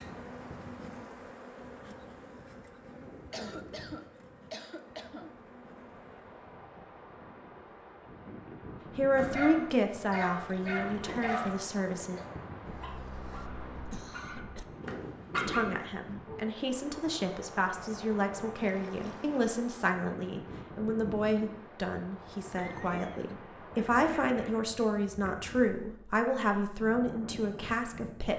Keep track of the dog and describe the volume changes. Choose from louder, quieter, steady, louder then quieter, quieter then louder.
quieter then louder.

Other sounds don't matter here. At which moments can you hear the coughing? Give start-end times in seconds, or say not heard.
3.3-5.3, 12.6-14.7, 22.6-23.4.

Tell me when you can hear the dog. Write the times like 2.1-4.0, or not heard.
9.2-16.4.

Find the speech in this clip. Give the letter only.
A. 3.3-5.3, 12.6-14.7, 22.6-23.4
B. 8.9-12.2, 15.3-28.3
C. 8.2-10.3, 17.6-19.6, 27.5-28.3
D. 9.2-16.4
B.